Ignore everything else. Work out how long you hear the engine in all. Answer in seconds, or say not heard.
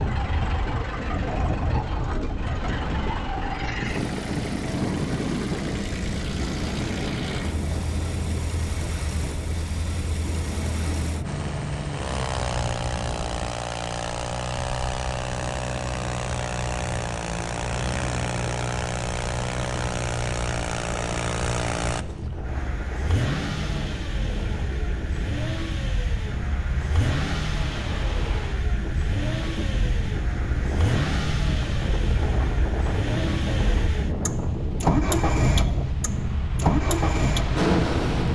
38 s.